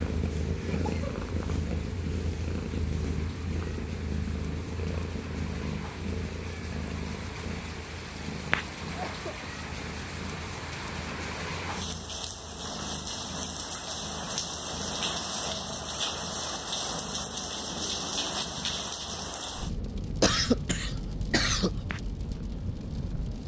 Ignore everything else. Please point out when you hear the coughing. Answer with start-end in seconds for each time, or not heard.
0.7-1.2, 8.8-9.4, 20.2-21.8.